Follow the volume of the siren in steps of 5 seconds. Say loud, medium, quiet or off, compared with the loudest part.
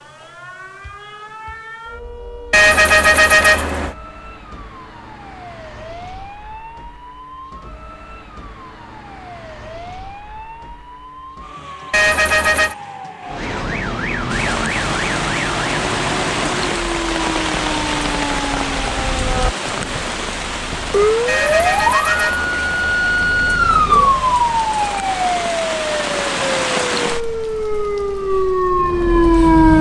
quiet, quiet, medium, medium, loud, loud.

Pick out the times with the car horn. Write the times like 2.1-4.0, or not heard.
2.5-4.0, 11.9-12.8, 21.2-23.0.